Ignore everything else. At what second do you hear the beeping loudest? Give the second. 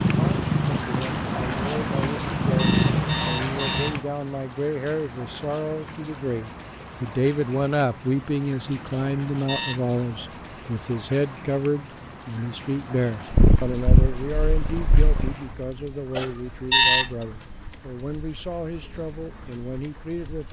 17 s.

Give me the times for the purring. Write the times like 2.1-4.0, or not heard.
0.0-4.0, 13.3-15.3.